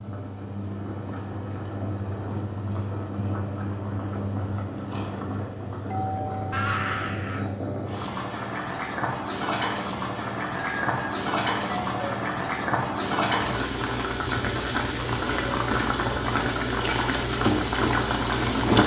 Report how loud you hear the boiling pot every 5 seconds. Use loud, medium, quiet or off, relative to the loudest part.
medium, medium, loud, loud.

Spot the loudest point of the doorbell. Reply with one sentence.
The loudest moment of the doorbell is at 7 seconds.